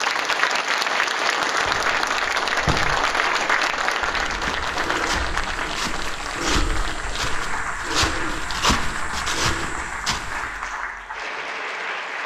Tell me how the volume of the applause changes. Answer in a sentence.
The volume of the applause goes down.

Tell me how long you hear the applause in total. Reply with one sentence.
You can hear the applause for 12 seconds altogether.